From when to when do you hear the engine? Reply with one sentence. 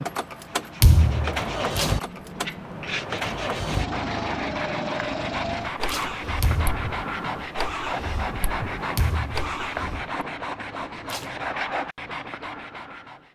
You can hear the engine from 0.0 to 10.2 s.